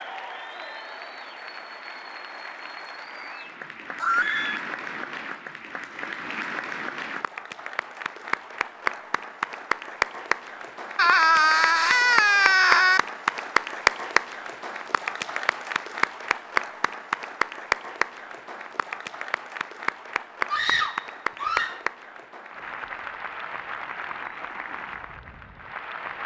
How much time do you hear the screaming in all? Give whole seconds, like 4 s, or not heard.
4 s.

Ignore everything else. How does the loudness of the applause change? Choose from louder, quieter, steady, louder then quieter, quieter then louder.
louder then quieter.